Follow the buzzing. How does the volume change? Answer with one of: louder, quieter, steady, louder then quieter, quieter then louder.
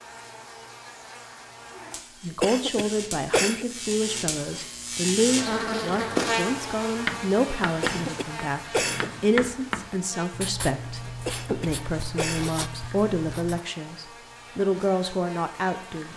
louder then quieter.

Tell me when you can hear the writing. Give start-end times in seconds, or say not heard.
6.8-13.6.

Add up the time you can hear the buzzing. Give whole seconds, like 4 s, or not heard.
16 s.